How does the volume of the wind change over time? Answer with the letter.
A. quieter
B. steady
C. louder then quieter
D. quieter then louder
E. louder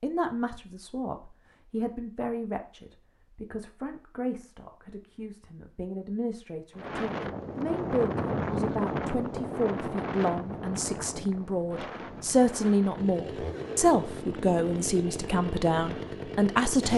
A.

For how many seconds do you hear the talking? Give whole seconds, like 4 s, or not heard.
17 s.